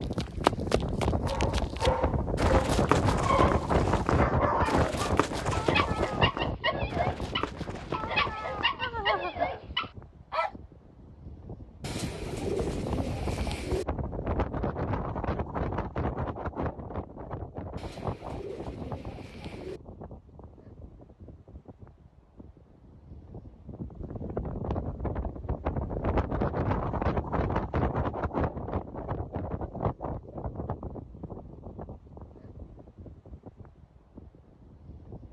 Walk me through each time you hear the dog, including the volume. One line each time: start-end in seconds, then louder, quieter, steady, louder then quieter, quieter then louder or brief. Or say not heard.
1.2-10.5 steady.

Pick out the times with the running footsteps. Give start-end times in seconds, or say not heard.
0.0-8.7.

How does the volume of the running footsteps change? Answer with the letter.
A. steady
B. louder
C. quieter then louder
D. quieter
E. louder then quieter
D.